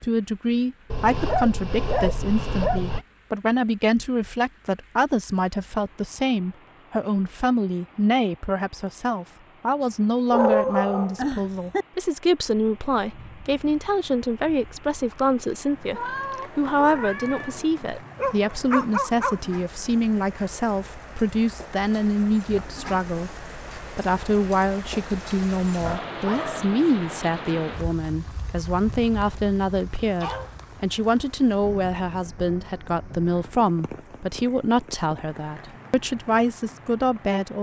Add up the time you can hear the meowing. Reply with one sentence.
You can hear the meowing for 2 seconds altogether.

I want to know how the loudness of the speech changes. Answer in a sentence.
The loudness of the speech stays about the same.